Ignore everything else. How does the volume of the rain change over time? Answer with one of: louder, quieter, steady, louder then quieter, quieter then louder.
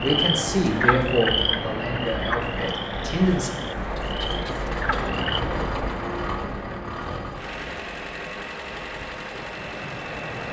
quieter.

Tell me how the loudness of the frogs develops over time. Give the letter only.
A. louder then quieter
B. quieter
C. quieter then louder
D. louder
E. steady
C.